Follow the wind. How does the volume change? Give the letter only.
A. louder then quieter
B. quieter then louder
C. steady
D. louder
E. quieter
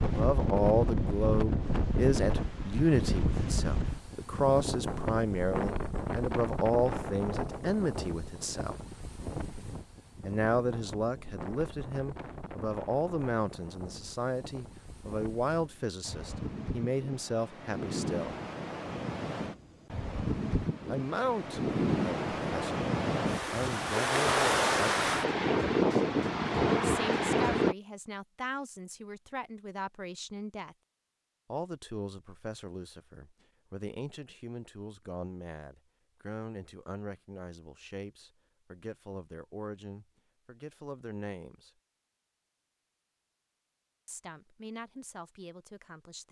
B.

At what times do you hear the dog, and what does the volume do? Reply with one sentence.
The dog can't be heard in this clip.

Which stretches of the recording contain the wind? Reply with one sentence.
You can hear the wind from 0.0 to 27.8 s.